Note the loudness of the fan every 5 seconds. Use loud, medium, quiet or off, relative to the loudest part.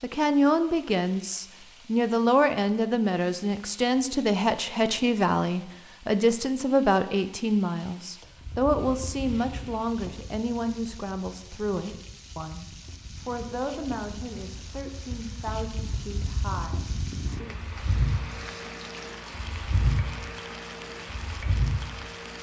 off, medium, quiet, loud, loud.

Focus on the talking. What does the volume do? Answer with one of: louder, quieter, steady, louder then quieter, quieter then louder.
quieter.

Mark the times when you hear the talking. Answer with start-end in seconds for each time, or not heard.
0.0-17.6.